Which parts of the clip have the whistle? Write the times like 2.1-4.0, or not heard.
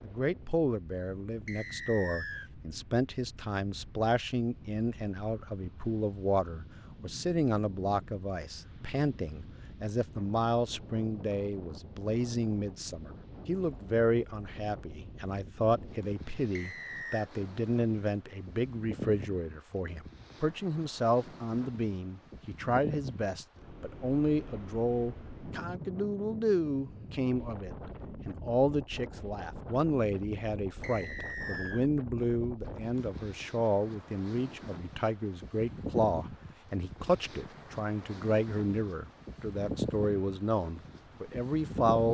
1.4-2.5, 16.6-17.2, 30.8-31.9.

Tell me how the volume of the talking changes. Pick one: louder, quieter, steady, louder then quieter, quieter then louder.
steady.